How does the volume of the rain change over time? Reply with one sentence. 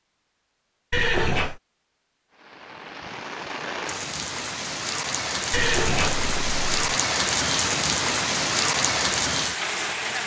The volume of the rain goes up.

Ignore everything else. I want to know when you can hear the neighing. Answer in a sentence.
You can hear the neighing from 0.9 to 1.6 s and from 5.5 to 6.7 s.